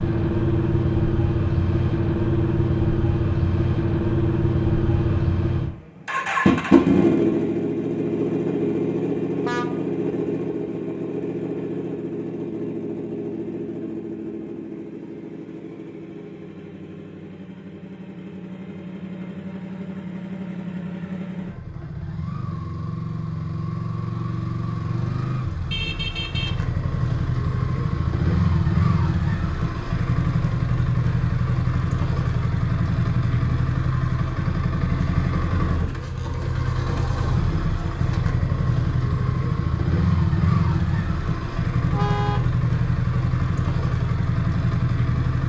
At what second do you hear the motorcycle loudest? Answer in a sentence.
The volume of the motorcycle peaks at 7 seconds.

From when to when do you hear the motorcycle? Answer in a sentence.
You can hear the motorcycle from 0.0 to 45.4 s.